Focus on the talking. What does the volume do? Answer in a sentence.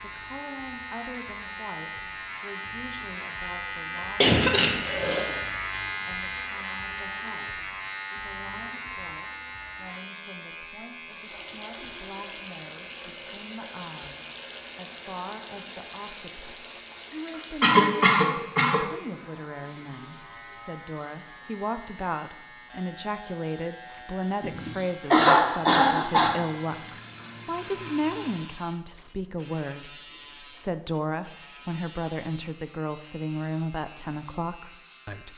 The loudness of the talking goes up.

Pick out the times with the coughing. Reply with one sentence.
You can hear the coughing from 4.0 to 5.3 s, from 16.9 to 18.8 s and from 24.4 to 26.3 s.